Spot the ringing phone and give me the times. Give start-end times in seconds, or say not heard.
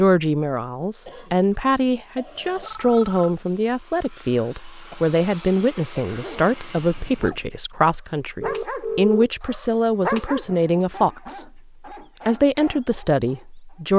2.6-3.3, 8.4-9.3.